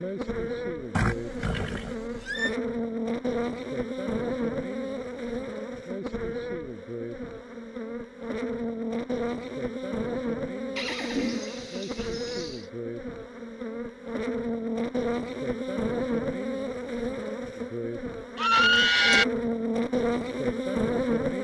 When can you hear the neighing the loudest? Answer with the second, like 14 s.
19 s.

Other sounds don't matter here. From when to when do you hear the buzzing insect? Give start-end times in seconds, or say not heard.
0.0-21.3.